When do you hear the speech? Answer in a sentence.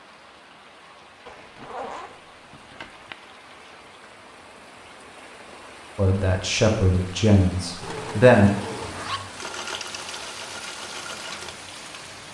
You can hear the speech from 6.0 to 8.5 s.